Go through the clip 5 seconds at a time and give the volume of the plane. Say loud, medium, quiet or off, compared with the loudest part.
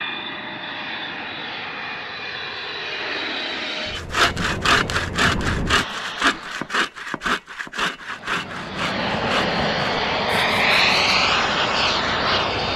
medium, medium, loud.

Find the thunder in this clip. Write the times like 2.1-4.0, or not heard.
not heard.